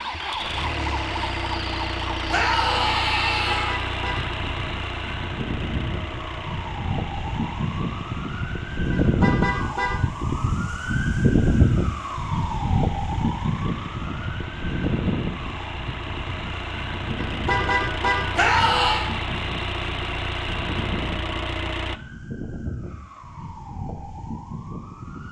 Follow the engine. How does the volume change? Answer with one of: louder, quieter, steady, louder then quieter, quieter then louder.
quieter then louder.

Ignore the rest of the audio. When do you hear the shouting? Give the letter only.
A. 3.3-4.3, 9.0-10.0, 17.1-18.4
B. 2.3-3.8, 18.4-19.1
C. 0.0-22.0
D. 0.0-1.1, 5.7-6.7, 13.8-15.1
B.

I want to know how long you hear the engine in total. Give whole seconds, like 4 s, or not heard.
22 s.